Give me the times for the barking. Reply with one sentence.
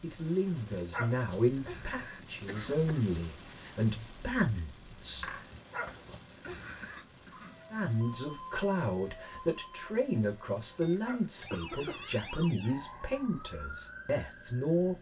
You can hear the barking from 0.7 to 2.2 s, from 5.5 to 7.0 s and from 10.8 to 12.3 s.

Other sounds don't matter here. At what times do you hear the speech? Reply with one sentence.
The speech can be heard from 0.0 to 5.2 s and from 7.7 to 14.9 s.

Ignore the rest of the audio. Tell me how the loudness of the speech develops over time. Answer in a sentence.
The volume of the speech stays about the same.